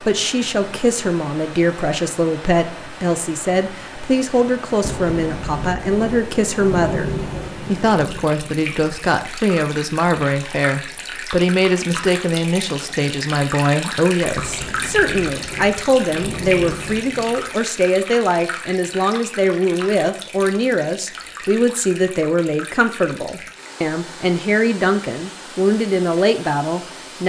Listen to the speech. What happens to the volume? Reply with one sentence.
The loudness of the speech stays about the same.